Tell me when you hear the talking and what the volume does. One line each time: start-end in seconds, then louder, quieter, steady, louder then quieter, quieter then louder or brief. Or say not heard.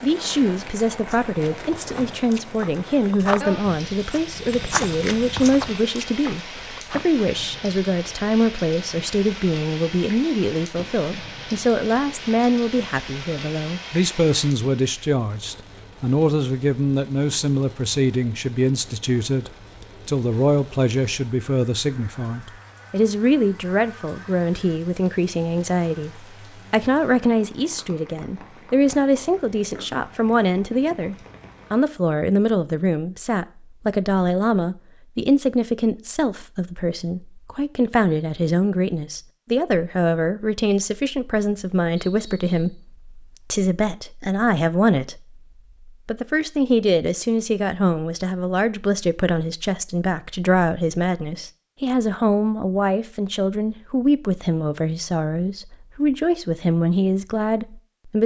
0.0-58.2 steady.